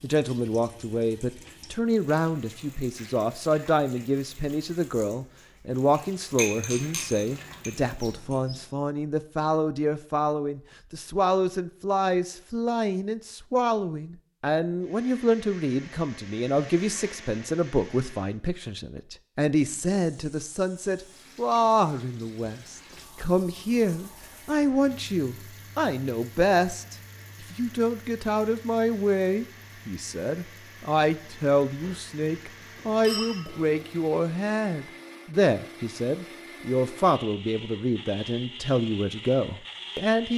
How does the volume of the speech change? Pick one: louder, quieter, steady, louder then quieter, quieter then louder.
steady.